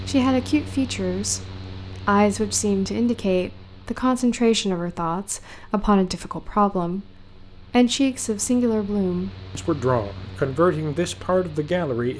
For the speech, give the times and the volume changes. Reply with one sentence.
You can hear the speech from 0.1 to 12.1 s, at a steady volume.